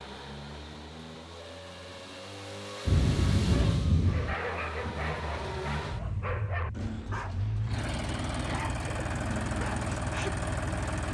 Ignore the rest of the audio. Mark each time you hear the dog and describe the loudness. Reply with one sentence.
The dog can be heard from 4.0 to 10.3 s, at a steady volume.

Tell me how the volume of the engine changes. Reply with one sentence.
The volume of the engine goes up.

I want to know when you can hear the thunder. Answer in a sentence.
The thunder can be heard from 2.9 to 4.3 s.